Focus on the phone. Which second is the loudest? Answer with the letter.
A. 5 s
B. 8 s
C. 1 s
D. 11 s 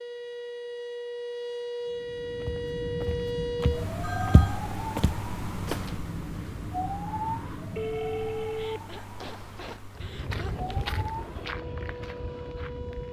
B.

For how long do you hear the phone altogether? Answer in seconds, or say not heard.
2 s.